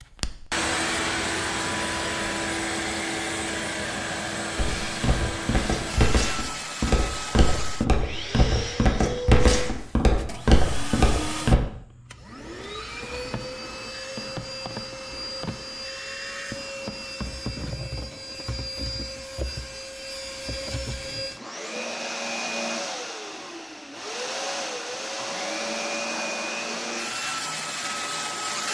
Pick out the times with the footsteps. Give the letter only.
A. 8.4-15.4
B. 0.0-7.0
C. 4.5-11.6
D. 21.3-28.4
C.